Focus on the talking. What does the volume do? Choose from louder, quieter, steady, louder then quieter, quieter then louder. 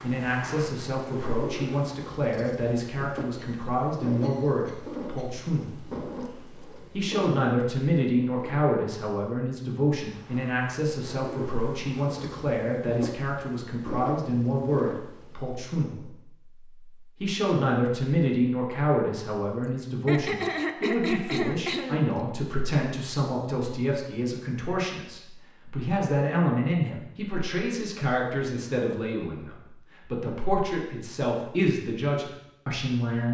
steady.